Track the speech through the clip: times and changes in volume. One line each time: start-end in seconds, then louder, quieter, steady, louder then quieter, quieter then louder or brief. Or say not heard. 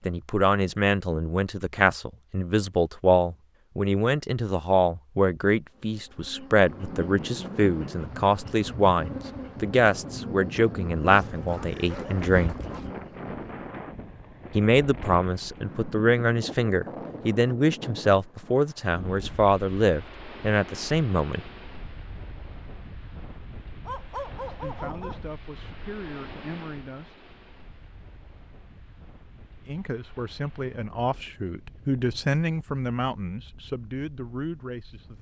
0.1-12.6 steady
14.5-21.4 steady
24.4-27.2 brief
29.6-35.1 louder then quieter.